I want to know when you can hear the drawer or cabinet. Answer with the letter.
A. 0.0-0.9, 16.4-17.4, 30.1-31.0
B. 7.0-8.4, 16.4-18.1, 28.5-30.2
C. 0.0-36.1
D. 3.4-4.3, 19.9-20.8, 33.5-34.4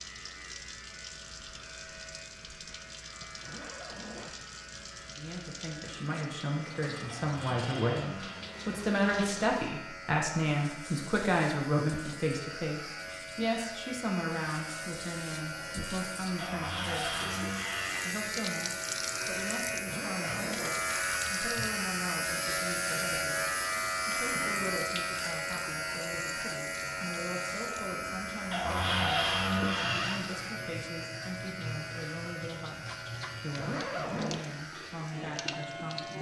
B.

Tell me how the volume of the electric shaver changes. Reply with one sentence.
The loudness of the electric shaver goes up, then down.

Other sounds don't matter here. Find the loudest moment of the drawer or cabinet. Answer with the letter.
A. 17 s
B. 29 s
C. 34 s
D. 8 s
B.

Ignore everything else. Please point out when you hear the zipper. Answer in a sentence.
The zipper can be heard from 3.4 to 4.3 s, from 19.9 to 20.8 s and from 33.5 to 34.4 s.